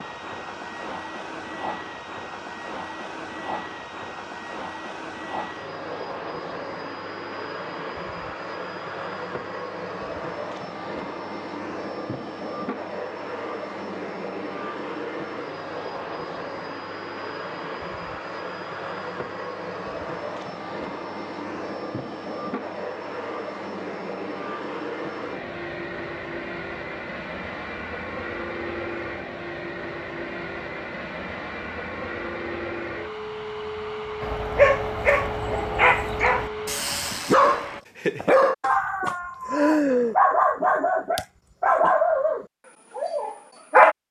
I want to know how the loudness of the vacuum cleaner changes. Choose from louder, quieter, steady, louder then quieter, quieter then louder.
steady.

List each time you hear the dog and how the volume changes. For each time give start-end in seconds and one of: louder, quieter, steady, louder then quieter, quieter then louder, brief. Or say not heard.
34.2-44.0 steady.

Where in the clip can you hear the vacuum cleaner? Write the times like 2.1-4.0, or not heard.
0.0-37.9.